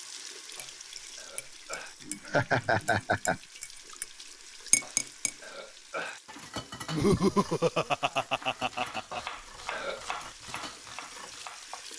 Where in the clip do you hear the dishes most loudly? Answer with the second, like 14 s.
5 s.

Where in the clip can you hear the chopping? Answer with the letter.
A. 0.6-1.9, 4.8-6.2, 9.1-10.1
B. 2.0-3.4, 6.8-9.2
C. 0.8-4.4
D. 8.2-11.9
D.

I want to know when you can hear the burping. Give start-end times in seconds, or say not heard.
0.6-1.9, 4.8-6.2, 9.1-10.1.